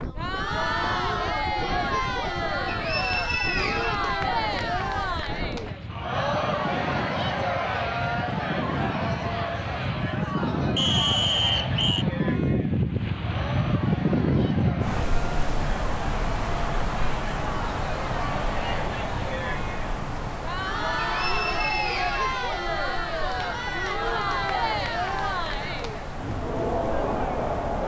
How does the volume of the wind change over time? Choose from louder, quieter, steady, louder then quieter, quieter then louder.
louder then quieter.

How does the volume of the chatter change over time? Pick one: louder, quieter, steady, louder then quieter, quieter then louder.
quieter then louder.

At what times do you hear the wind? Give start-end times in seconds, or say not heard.
0.0-27.8.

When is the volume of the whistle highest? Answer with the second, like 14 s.
11 s.